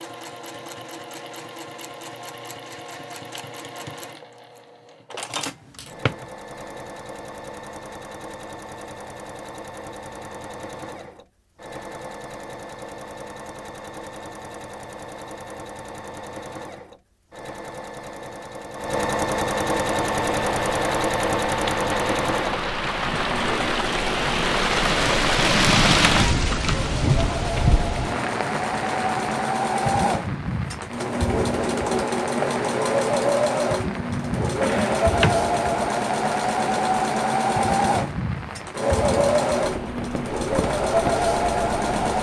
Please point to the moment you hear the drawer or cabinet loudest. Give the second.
35 s.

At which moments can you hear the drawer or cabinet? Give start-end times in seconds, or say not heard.
5.8-6.2, 34.6-35.4.